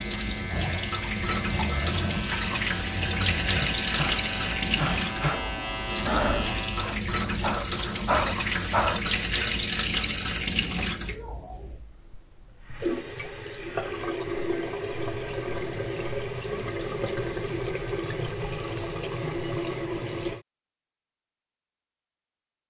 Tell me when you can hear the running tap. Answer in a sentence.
The running tap can be heard from 0.0 to 20.4 s.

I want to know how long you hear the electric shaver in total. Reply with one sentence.
You can hear the electric shaver for 7 seconds altogether.